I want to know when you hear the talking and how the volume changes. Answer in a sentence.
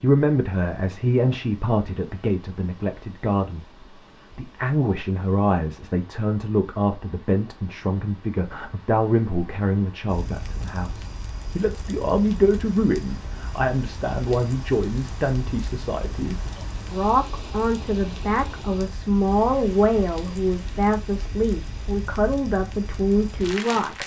You can hear the talking from 0.0 to 24.0 s, at a steady volume.